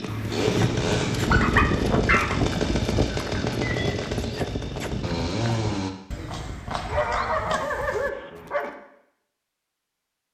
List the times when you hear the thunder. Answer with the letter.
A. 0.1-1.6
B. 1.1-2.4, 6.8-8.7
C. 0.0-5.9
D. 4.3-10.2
A.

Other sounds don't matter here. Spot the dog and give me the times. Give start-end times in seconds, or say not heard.
1.1-2.4, 6.8-8.7.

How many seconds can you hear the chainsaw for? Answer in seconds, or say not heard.
6 s.